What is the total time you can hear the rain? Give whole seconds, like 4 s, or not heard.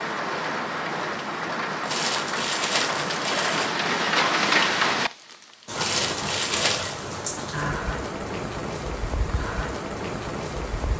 11 s.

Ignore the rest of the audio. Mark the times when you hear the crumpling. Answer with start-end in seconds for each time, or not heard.
1.9-3.7, 5.8-7.0.